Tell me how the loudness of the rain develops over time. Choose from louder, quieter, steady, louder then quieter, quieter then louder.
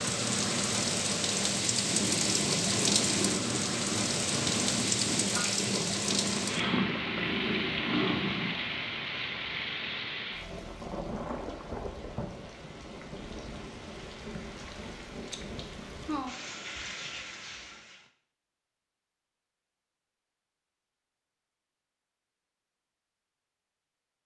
quieter.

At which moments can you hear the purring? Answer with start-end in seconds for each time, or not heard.
1.9-8.6.